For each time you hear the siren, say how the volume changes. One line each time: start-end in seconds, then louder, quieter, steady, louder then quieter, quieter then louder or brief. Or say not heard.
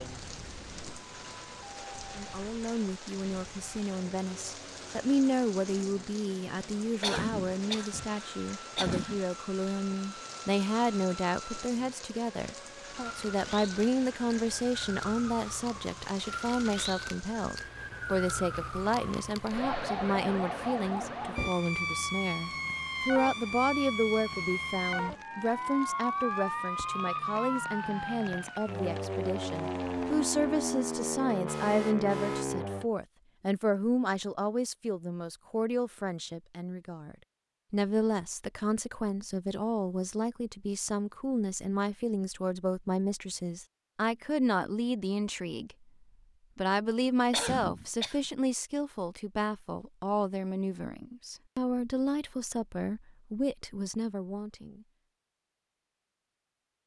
0.0-32.9 louder.